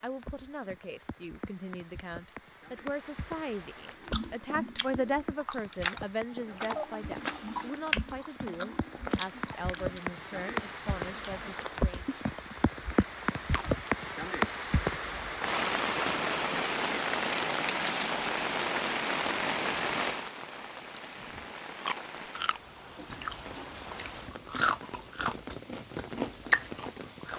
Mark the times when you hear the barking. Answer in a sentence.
You can't hear the barking here.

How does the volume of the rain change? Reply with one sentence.
The volume of the rain goes up, then down.